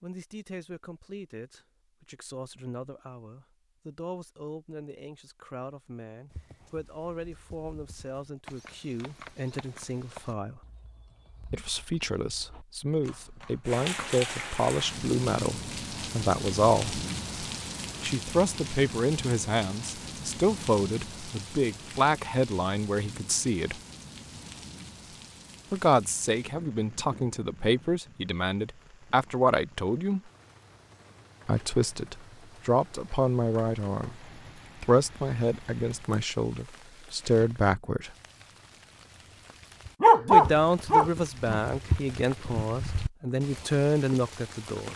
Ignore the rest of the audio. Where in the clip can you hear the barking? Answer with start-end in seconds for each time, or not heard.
40.0-41.6.